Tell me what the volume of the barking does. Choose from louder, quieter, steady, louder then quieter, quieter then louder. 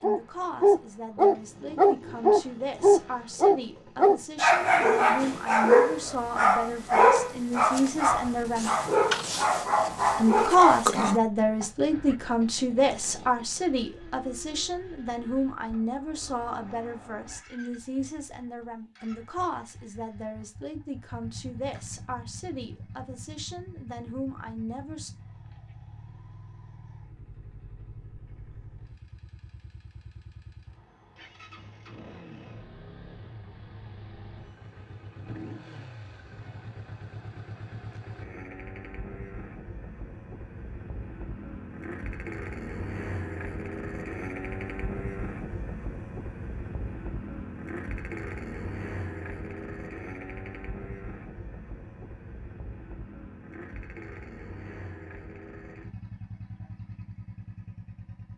quieter.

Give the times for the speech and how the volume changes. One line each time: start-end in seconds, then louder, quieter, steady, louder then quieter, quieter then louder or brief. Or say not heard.
0.0-8.7 louder
10.2-25.1 quieter.